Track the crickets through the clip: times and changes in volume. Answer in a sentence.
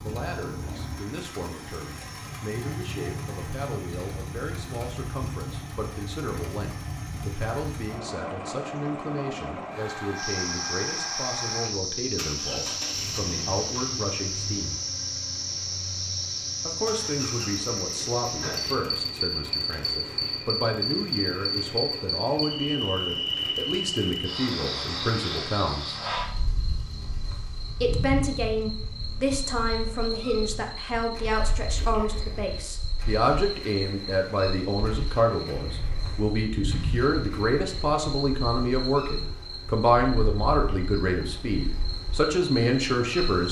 The crickets can be heard from 10.2 to 43.4 s, getting quieter.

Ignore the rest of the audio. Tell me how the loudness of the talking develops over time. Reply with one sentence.
The loudness of the talking goes up.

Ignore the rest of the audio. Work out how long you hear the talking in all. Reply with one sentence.
The talking can be heard for 40 seconds in total.